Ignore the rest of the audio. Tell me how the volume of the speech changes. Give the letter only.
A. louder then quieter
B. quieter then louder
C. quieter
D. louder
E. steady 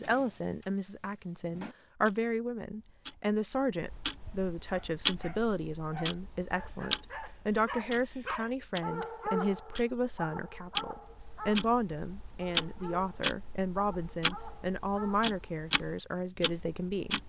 E.